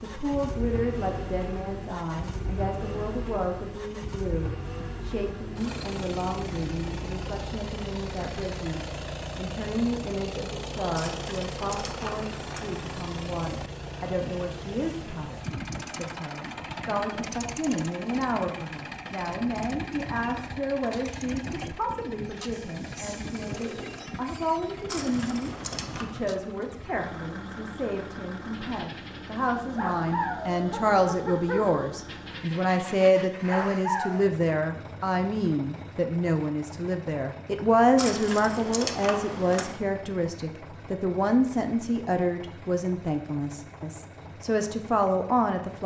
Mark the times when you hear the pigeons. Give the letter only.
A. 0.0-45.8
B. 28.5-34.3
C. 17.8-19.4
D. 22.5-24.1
D.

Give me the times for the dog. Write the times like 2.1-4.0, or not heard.
28.5-34.3.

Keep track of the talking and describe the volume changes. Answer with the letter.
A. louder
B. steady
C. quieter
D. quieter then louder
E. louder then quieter
A.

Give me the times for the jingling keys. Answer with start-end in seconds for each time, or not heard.
10.9-12.7, 24.9-26.1, 38.0-39.8.